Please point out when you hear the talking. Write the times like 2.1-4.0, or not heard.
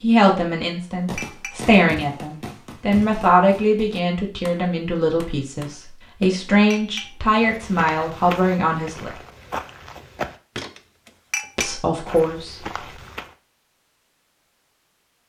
0.0-9.1, 11.6-12.6.